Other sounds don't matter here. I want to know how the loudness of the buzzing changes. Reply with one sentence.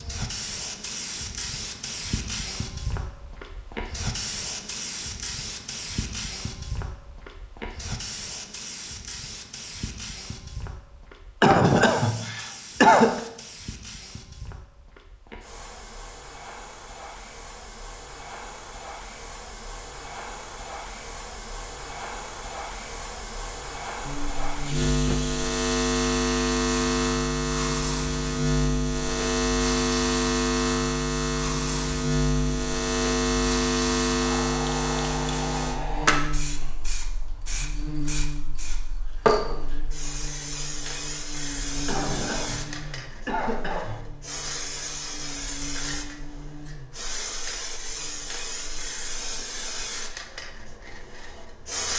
The loudness of the buzzing goes down.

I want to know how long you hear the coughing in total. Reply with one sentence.
You can hear the coughing for 4 seconds altogether.